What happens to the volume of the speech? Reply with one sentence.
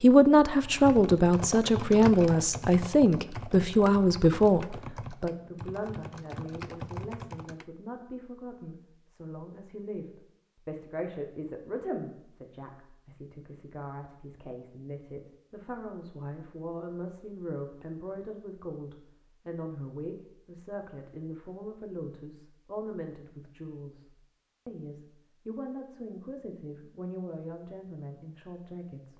The volume of the speech goes down.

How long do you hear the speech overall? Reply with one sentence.
The speech can be heard for 29 seconds in total.